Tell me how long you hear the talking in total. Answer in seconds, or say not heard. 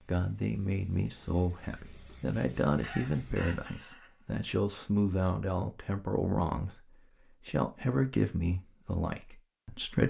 10 s.